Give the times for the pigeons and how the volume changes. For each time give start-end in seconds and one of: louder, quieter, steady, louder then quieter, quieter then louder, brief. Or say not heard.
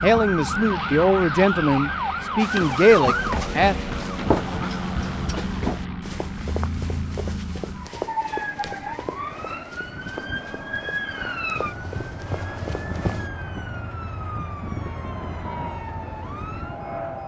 not heard.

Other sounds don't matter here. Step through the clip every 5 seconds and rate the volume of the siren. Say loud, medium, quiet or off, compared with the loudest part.
loud, medium, medium, medium.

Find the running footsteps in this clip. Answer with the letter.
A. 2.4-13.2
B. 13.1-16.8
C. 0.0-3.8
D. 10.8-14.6
A.